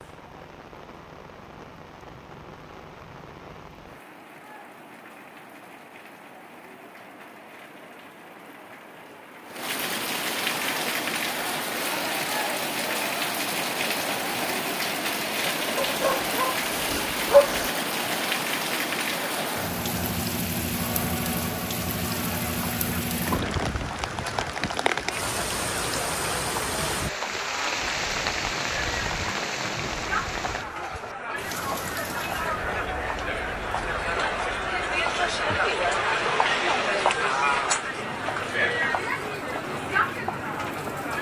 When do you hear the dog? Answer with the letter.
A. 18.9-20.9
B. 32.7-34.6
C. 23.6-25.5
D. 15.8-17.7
D.